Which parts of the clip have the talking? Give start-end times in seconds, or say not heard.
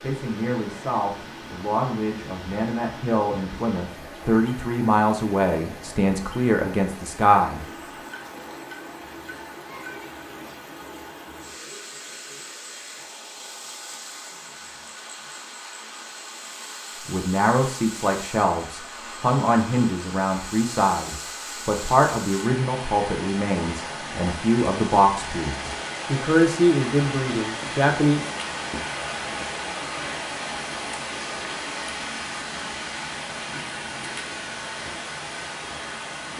0.0-7.6, 17.1-28.2.